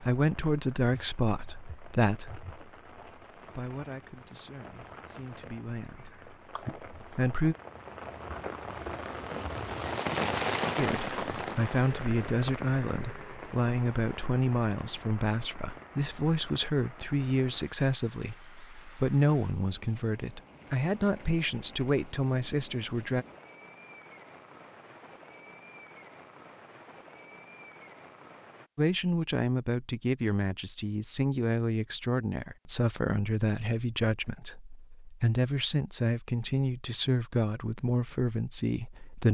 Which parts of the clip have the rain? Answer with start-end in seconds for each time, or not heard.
0.0-28.7.